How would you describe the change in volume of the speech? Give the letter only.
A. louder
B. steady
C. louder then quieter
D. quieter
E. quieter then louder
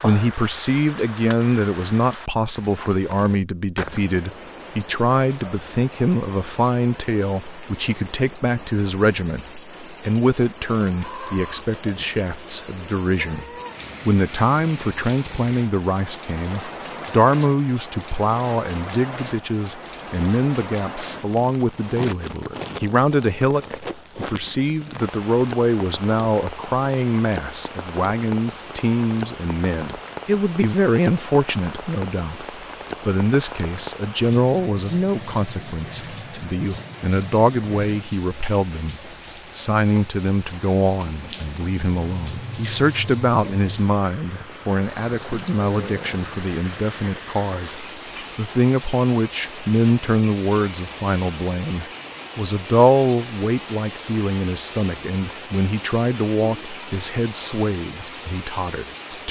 B.